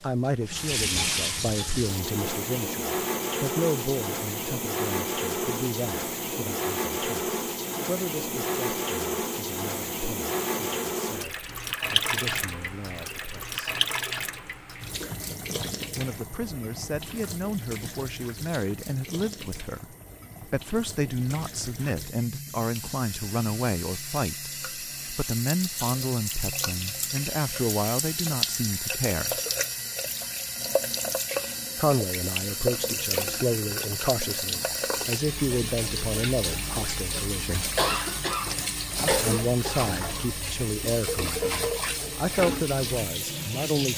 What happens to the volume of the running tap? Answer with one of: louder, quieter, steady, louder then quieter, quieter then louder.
quieter then louder.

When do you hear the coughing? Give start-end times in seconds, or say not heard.
37.8-40.3.